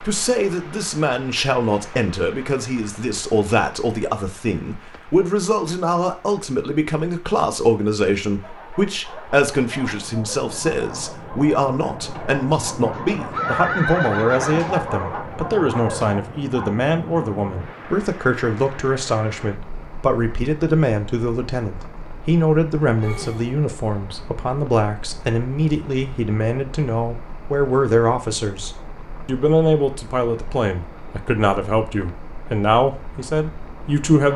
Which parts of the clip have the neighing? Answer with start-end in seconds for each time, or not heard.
12.9-14.6, 23.0-23.6.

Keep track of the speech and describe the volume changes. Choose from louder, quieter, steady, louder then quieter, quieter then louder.
steady.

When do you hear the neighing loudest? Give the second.
14 s.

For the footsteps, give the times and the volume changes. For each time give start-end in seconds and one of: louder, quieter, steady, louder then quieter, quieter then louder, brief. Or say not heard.
not heard.